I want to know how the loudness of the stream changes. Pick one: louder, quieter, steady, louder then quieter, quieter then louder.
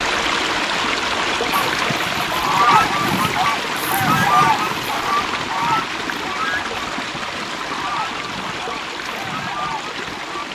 quieter.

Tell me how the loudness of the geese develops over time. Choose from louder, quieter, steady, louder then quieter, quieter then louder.
quieter.